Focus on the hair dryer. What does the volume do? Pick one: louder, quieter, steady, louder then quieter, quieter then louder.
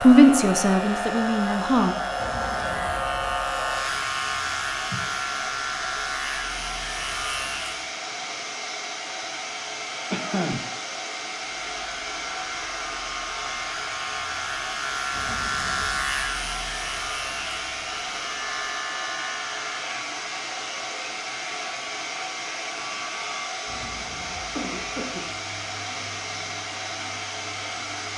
steady.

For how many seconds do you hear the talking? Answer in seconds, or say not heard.
2 s.